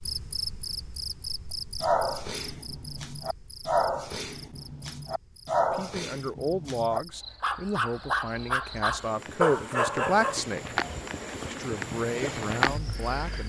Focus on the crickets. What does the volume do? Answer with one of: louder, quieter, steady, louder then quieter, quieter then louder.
quieter then louder.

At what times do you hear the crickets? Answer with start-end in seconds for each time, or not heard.
0.0-13.4.